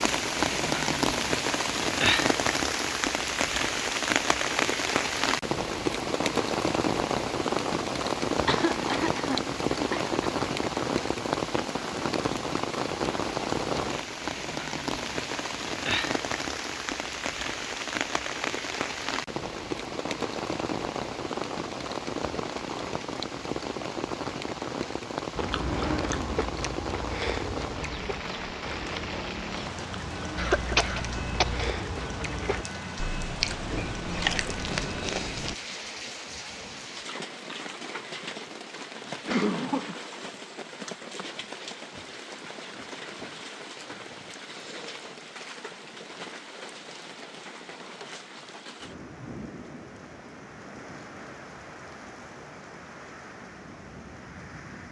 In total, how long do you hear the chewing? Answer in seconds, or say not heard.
10 s.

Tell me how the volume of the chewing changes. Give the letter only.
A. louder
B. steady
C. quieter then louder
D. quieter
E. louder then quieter
C.